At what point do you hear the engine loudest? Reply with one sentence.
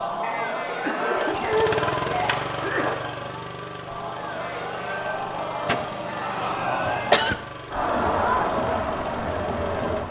The loudest moment of the engine is at 2 seconds.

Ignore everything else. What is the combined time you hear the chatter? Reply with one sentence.
The chatter can be heard for 10 seconds in total.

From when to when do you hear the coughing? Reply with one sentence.
You can hear the coughing from 0.2 to 3.0 s and from 5.7 to 7.3 s.